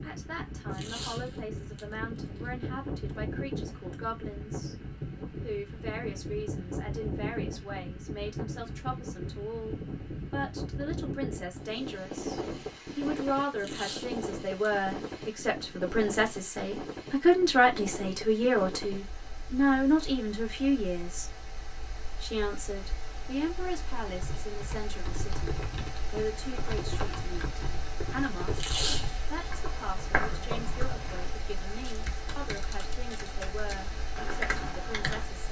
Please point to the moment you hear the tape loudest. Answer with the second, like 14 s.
29 s.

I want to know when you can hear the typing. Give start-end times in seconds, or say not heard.
24.1-35.2.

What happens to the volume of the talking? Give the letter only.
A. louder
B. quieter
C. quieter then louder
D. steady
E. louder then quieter
E.